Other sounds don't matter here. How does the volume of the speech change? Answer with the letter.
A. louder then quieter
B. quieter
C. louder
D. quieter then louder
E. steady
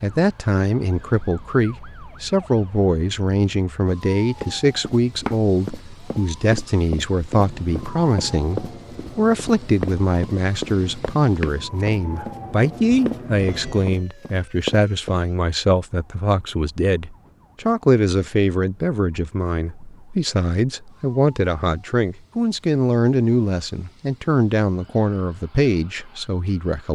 E.